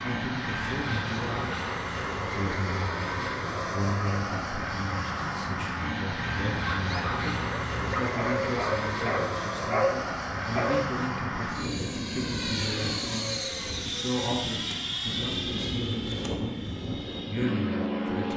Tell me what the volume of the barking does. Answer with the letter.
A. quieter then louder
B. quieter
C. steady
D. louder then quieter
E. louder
E.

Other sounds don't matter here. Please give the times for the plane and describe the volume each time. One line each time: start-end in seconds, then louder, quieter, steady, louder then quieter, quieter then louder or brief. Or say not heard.
0.0-18.3 steady.